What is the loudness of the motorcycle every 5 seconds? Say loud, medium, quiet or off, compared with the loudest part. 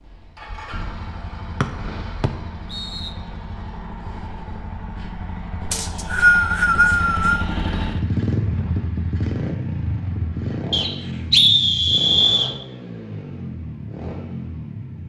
medium, loud, loud.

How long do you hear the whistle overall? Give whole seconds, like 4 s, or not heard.
5 s.